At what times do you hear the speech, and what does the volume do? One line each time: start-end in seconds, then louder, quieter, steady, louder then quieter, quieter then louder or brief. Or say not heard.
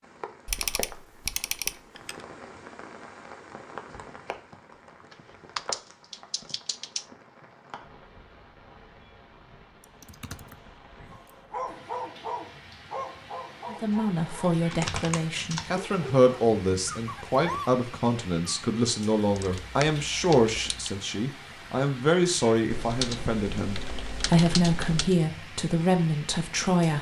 13.7-26.9 steady.